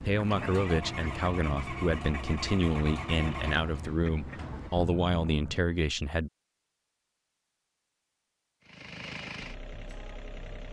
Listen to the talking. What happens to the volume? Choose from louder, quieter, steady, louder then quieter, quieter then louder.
steady.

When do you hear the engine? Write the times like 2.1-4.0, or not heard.
0.2-5.7, 8.7-10.6.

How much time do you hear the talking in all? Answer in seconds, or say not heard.
6 s.